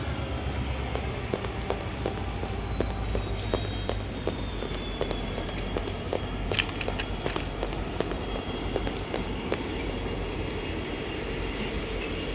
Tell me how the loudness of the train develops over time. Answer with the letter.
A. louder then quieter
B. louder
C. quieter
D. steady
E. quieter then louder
D.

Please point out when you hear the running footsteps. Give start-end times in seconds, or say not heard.
1.1-9.7.